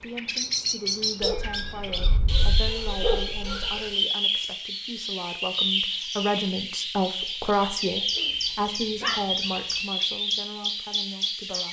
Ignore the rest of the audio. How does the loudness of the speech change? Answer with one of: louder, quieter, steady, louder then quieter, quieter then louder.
louder then quieter.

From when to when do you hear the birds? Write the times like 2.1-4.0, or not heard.
0.0-11.6.